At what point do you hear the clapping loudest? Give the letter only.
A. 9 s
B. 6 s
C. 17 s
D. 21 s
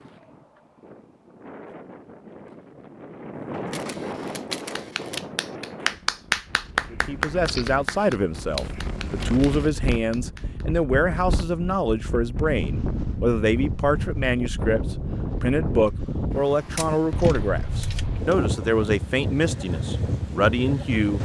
B.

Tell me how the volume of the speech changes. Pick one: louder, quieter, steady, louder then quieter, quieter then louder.
steady.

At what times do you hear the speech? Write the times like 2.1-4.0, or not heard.
6.9-21.1.